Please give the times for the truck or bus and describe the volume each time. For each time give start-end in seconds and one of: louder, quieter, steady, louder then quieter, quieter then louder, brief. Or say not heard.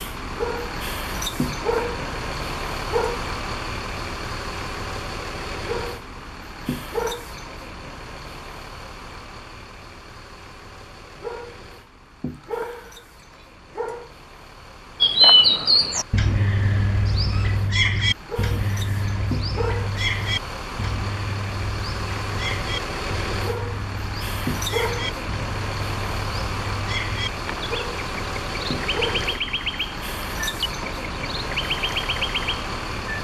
0.0-33.1 quieter then louder.